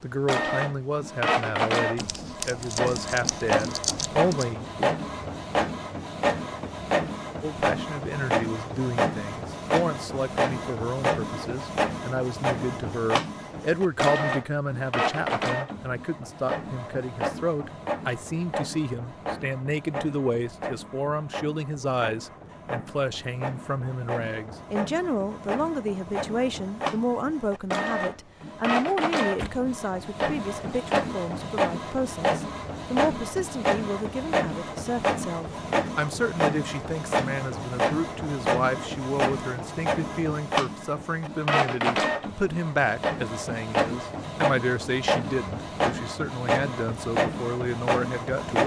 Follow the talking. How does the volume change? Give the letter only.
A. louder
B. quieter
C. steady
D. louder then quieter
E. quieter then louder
C.